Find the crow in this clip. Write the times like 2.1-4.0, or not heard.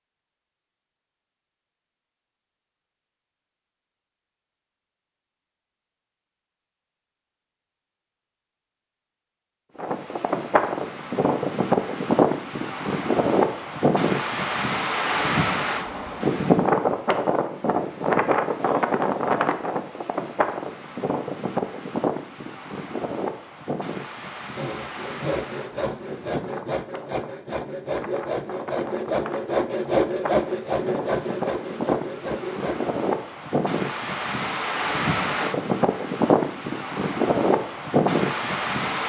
not heard.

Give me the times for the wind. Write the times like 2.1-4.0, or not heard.
9.8-39.0.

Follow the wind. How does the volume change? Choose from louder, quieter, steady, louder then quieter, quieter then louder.
quieter then louder.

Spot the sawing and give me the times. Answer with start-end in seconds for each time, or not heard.
24.6-33.0.